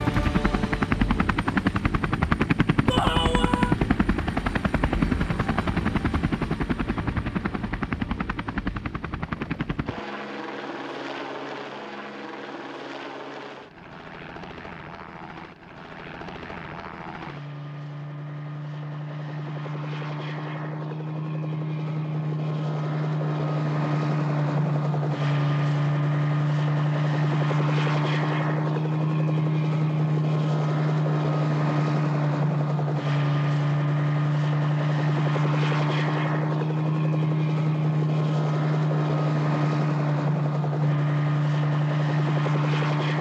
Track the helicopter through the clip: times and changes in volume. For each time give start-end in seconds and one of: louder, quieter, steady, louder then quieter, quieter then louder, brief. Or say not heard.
0.0-43.1 quieter then louder.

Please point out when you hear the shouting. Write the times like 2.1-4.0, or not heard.
2.9-3.8.